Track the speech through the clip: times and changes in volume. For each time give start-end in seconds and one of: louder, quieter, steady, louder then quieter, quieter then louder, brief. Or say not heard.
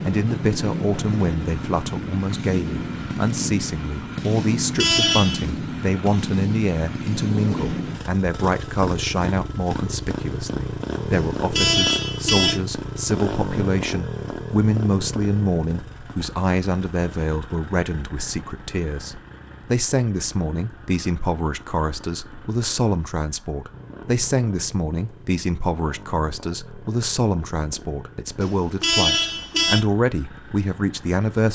0.0-31.5 steady.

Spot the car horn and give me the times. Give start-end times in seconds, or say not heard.
4.3-5.5, 11.1-12.6, 28.4-29.9.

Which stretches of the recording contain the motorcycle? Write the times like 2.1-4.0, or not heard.
0.0-31.5.